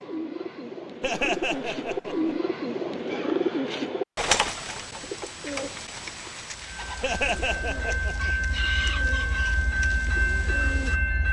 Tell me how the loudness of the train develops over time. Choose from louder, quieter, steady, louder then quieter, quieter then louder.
louder.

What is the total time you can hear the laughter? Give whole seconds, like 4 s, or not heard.
3 s.